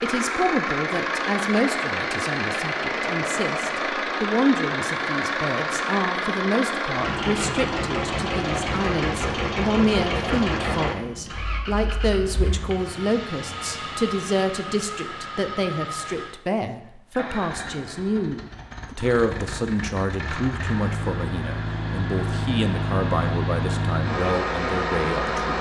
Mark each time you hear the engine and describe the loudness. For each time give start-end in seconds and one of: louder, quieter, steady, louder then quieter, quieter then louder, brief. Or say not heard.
0.0-25.5 quieter then louder.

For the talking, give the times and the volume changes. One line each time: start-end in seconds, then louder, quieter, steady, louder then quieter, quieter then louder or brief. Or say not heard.
0.0-25.5 steady.